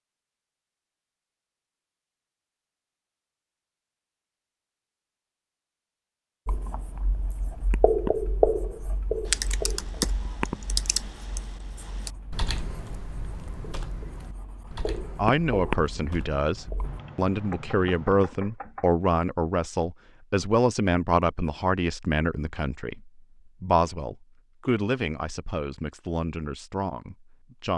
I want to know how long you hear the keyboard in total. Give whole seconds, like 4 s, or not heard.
9 s.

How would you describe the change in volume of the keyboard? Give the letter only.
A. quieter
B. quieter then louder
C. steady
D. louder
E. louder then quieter
A.